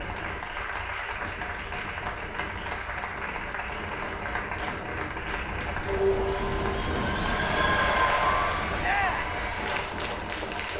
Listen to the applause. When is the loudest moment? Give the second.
8 s.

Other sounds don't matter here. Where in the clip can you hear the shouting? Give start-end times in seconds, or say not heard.
8.8-9.3.